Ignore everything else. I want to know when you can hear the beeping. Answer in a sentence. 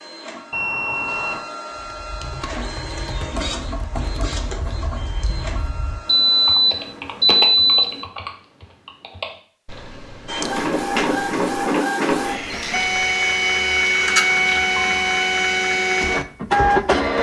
You can hear the beeping from 0.5 to 1.4 s, from 6.0 to 8.0 s and from 14.2 to 15.0 s.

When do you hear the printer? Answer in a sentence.
The printer can be heard from 0.0 to 6.5 s and from 10.2 to 17.1 s.